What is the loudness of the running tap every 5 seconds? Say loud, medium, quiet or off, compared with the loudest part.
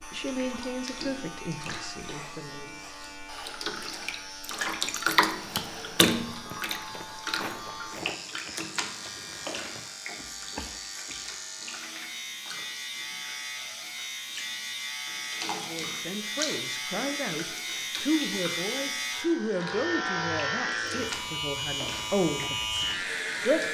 medium, loud, quiet, medium, medium.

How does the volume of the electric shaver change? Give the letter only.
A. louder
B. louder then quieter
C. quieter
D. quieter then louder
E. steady
A.